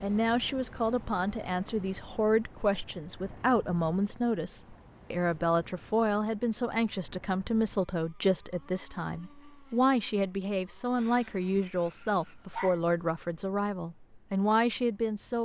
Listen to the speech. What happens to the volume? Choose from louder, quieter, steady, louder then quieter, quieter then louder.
steady.